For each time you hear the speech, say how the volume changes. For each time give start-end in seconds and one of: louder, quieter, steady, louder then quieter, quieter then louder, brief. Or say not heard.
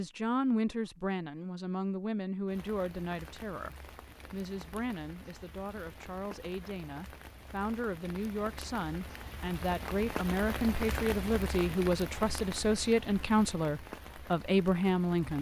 0.0-15.3 quieter then louder.